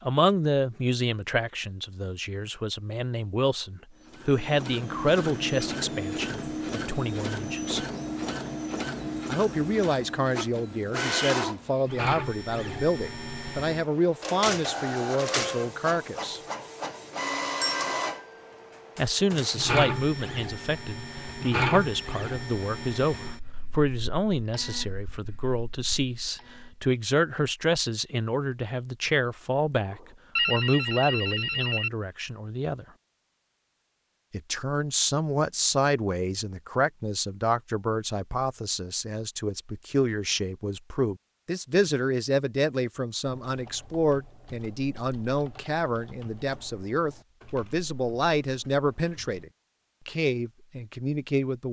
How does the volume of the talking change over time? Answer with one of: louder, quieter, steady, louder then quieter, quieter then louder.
steady.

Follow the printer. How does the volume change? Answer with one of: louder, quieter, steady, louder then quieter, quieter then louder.
quieter.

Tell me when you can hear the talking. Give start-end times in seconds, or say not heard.
0.0-7.8, 9.2-16.4, 18.9-32.9, 34.3-51.6.